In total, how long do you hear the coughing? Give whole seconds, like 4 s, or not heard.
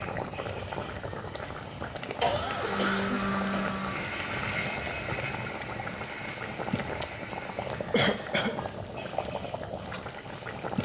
2 s.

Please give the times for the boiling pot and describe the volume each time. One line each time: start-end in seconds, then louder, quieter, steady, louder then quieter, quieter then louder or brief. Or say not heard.
0.0-10.8 steady.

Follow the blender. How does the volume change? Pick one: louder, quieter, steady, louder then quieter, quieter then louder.
quieter.